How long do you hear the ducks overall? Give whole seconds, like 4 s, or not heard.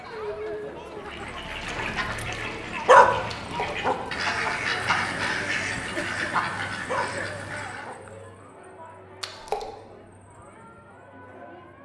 7 s.